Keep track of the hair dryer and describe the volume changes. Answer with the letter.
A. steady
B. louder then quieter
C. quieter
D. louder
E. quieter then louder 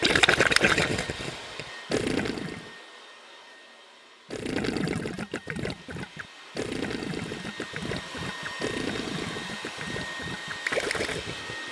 E.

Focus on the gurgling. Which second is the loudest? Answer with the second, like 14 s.
1 s.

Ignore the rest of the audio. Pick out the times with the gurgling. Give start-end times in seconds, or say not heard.
0.0-2.7, 4.3-11.6.